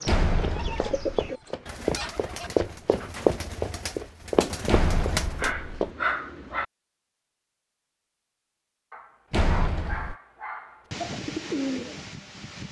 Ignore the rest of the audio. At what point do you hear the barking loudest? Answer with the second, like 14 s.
6 s.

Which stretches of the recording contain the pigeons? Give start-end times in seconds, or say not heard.
0.0-5.5, 10.9-12.6.